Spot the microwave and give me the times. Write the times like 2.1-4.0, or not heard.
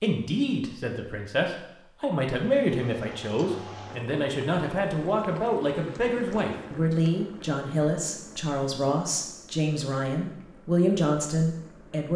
not heard.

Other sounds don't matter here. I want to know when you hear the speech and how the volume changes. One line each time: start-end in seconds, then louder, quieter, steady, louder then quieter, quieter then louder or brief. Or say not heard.
0.0-12.1 steady.